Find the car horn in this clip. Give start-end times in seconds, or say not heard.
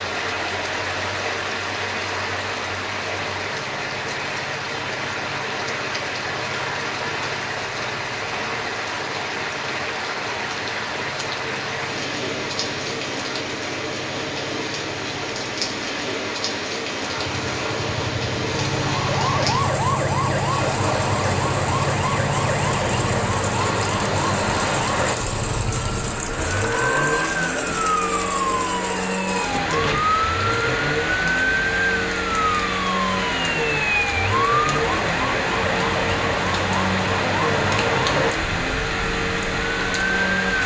not heard.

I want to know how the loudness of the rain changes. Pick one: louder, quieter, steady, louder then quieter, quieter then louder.
steady.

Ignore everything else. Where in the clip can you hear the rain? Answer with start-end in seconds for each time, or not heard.
0.0-40.6.